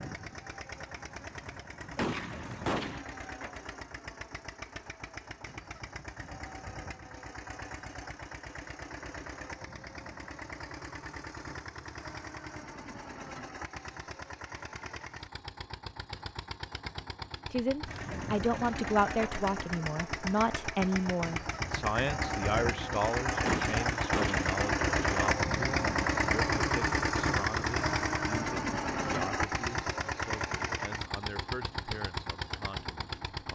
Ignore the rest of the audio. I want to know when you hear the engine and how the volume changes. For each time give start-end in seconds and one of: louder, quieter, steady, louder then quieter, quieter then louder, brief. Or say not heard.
0.0-33.5 louder.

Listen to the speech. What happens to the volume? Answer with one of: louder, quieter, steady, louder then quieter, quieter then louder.
quieter.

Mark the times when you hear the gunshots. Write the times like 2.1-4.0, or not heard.
1.9-3.0, 23.4-24.5.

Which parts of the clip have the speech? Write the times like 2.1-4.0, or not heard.
17.5-33.5.